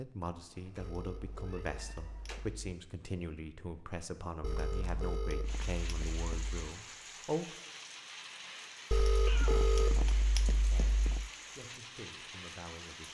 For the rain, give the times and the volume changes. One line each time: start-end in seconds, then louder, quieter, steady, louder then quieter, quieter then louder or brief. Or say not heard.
5.4-13.1 steady.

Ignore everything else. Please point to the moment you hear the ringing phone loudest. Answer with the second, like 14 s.
10 s.